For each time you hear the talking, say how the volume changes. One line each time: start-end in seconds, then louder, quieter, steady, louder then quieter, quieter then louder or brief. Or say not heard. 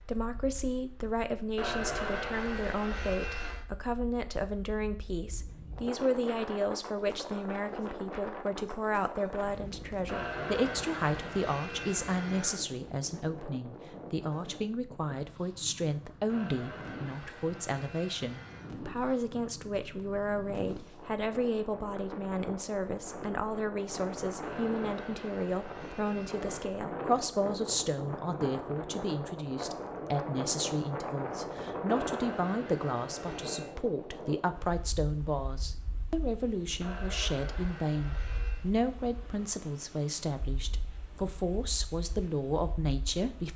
0.0-43.5 steady.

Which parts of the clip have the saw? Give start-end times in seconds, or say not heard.
1.6-3.6, 10.1-12.7, 16.3-18.8, 24.4-26.8, 31.9-33.8, 36.8-38.6.